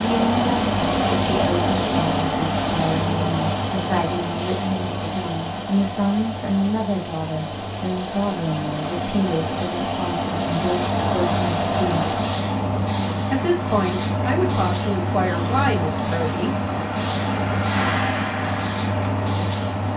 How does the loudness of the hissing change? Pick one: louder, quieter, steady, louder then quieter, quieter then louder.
quieter then louder.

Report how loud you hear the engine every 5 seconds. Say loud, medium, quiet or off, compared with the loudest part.
loud, medium, loud, loud.